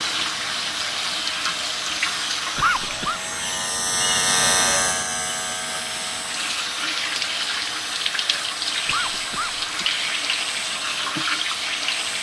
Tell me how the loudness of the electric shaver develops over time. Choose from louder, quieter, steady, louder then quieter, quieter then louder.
louder then quieter.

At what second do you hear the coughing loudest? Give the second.
3 s.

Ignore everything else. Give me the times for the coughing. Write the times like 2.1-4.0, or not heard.
2.5-3.2, 8.8-9.9.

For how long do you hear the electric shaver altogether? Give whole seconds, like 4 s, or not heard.
12 s.